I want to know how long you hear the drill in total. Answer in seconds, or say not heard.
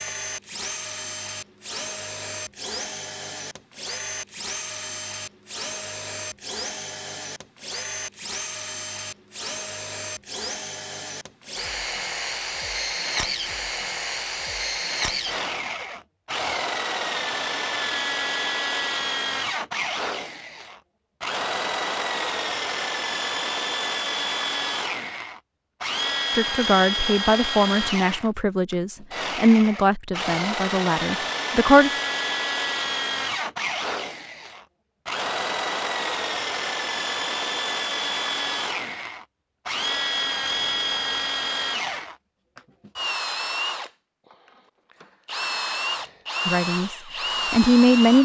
48 s.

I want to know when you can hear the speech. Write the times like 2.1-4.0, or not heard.
26.4-31.9, 46.5-48.2.